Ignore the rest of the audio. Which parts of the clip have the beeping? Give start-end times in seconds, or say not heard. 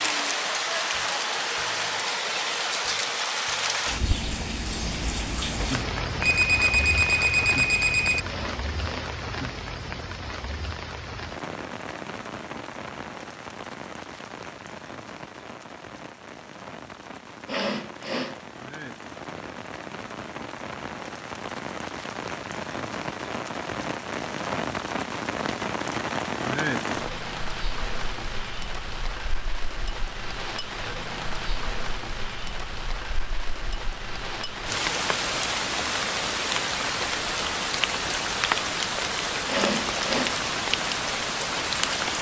6.2-8.2.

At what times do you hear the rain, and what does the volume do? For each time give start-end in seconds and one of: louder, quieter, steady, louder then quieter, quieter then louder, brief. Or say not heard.
0.0-42.1 quieter then louder.